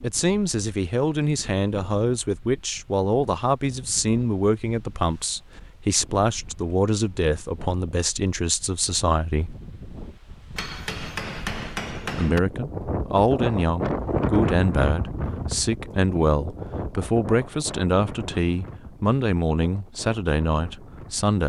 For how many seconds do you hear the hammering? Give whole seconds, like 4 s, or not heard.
2 s.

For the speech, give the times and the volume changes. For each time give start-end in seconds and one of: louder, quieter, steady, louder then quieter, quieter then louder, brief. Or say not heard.
0.0-9.6 steady
12.0-21.4 steady.